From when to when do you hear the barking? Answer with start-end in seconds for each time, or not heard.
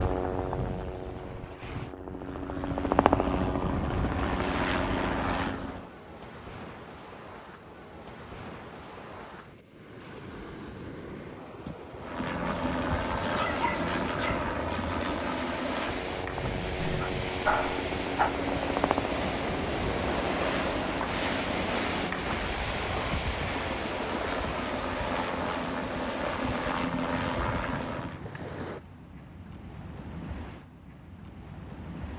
13.2-14.5, 16.8-18.4.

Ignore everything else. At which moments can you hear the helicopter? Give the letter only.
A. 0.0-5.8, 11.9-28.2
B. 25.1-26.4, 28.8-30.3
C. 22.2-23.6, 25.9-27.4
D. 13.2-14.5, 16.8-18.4
A.